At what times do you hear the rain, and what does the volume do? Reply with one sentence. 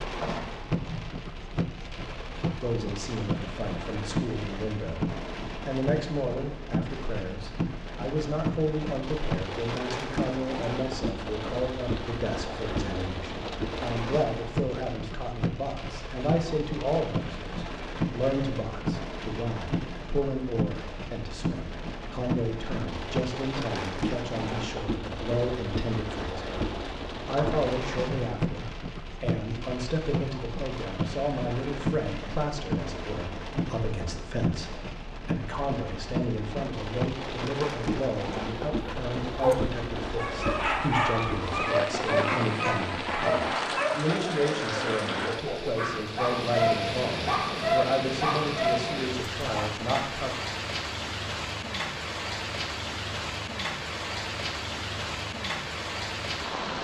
You can hear the rain from 0.0 to 56.7 s, at a steady volume.